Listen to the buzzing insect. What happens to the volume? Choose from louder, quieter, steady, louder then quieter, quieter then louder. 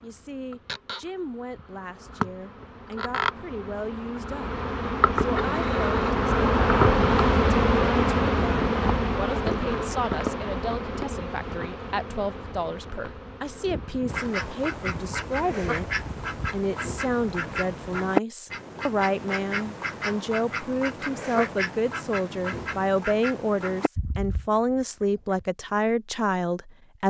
louder then quieter.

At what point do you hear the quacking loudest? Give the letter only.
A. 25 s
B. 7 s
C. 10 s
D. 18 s
D.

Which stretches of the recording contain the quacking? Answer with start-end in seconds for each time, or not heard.
14.1-25.4.